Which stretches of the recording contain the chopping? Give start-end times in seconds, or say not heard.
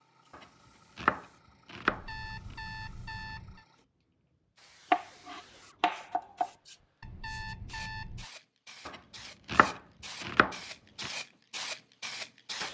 0.3-2.5, 4.9-6.5, 8.8-11.1.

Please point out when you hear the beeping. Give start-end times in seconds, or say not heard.
1.9-3.6, 7.0-8.3.